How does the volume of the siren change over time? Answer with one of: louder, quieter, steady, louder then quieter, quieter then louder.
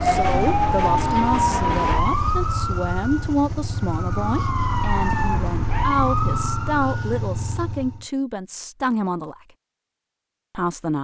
quieter then louder.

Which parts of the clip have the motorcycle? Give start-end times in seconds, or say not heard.
0.2-8.1.